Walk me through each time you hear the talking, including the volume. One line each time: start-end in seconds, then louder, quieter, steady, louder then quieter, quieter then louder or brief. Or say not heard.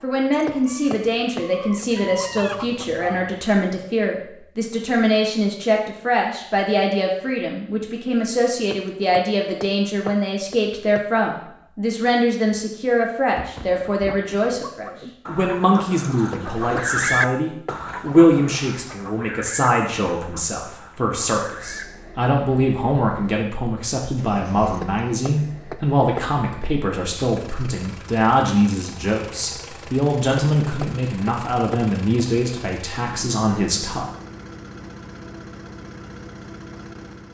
0.0-34.0 steady.